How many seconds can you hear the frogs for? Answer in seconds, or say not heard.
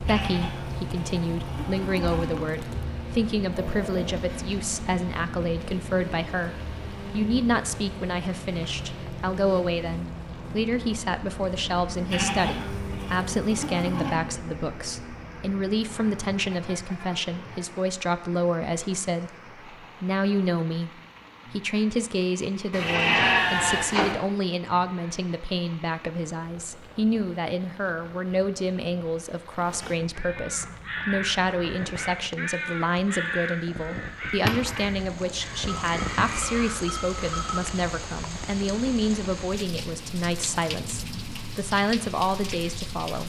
not heard.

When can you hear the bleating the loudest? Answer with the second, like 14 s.
23 s.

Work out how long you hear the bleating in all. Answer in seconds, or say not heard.
8 s.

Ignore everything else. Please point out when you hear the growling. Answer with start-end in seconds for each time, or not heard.
3.5-4.5.